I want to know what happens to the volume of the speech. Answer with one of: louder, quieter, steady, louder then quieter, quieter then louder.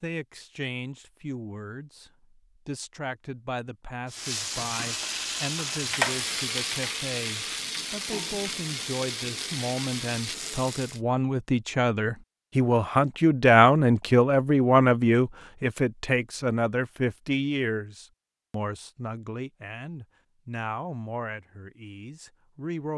louder then quieter.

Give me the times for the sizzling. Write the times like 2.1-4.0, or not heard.
4.0-11.0.